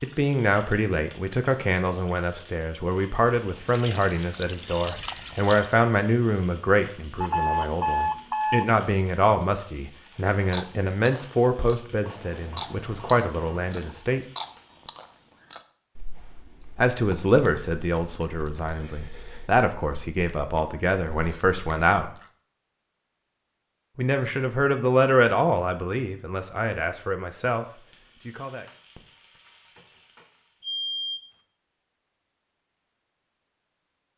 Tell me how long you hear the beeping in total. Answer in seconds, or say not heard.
4 s.